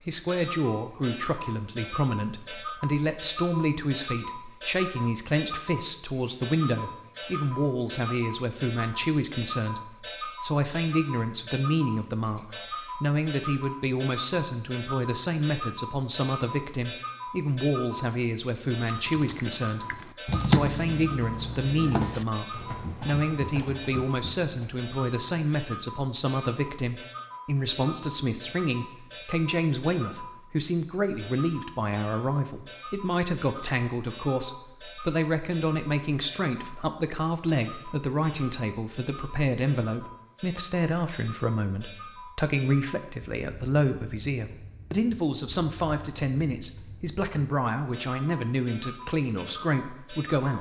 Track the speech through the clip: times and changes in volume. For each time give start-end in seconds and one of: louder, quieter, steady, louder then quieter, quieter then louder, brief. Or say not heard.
0.1-50.5 steady.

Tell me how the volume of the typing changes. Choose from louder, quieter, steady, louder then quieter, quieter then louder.
louder then quieter.